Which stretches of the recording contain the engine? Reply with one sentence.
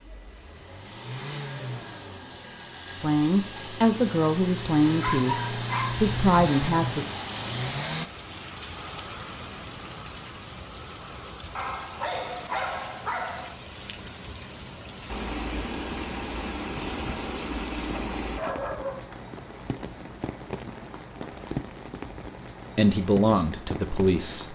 You can hear the engine from 0.0 to 8.1 s and from 15.1 to 18.4 s.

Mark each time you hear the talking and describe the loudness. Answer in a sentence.
You can hear the talking from 3.0 to 7.0 s, getting quieter then louder; and briefly from 22.8 to 24.5 s.